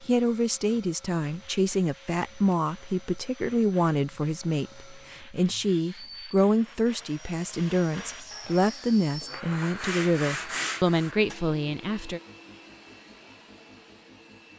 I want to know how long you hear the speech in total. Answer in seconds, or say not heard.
12 s.